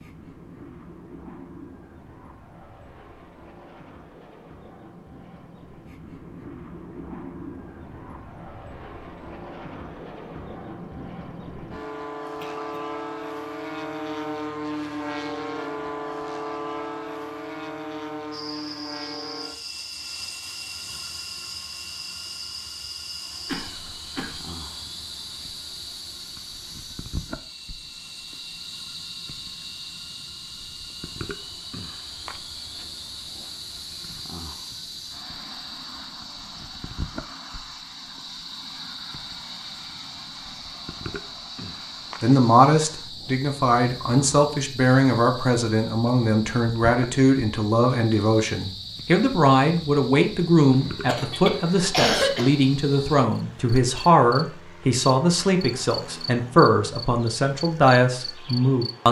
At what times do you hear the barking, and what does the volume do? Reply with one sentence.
The barking can't be heard in this clip.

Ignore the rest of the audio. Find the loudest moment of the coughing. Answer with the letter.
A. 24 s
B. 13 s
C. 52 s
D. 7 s
C.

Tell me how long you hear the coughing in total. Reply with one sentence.
You can hear the coughing for 3 seconds altogether.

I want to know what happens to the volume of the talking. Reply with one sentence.
The loudness of the talking stays about the same.